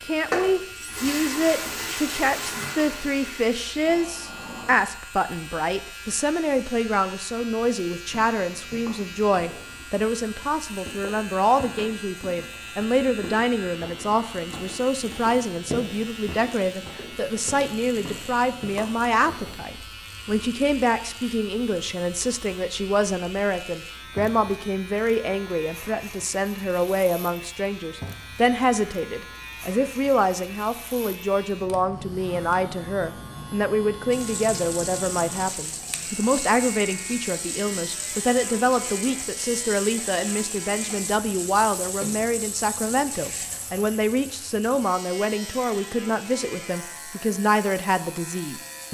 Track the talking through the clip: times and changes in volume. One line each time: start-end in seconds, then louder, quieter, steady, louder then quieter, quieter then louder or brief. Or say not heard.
0.0-48.9 steady.